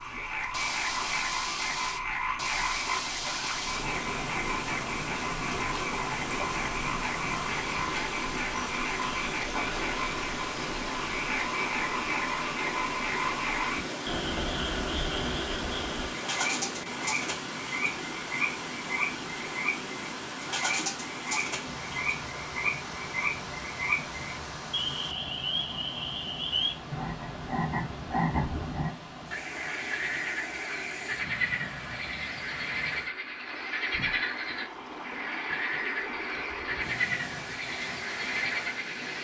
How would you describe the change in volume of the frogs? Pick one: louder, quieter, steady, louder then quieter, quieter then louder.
steady.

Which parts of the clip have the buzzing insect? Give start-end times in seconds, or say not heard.
not heard.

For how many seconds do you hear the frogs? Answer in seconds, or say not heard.
39 s.